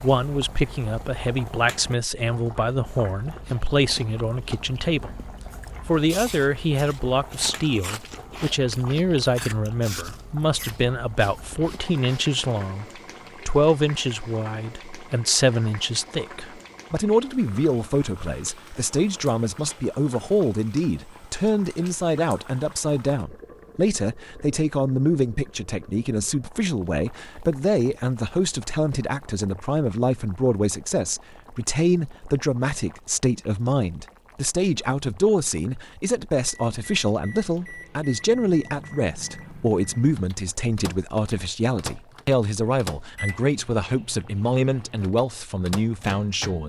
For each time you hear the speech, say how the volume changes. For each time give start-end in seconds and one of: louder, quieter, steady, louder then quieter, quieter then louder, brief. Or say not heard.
0.0-12.8 steady
13.4-46.6 steady.